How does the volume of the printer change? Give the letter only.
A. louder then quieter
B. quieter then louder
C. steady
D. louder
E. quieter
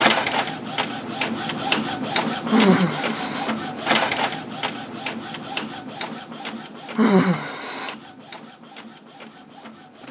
E.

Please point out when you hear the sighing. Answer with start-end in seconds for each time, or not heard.
2.5-3.5, 7.0-8.0.